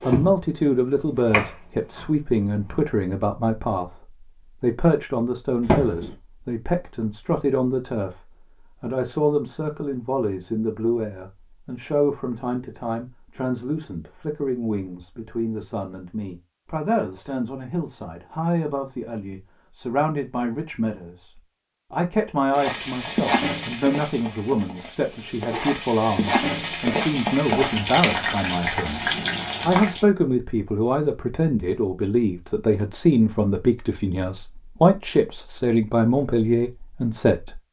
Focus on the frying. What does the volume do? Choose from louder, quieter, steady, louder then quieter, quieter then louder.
quieter then louder.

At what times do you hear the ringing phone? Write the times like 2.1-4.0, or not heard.
5.6-6.2.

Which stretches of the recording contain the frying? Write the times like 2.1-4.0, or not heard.
22.5-30.1.